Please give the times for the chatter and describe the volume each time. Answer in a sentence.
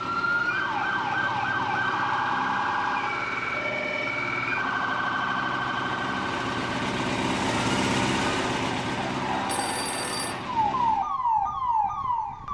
The chatter can't be heard in this clip.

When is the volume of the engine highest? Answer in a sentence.
The volume of the engine peaks at 8 seconds.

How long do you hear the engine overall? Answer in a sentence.
You can hear the engine for 11 seconds altogether.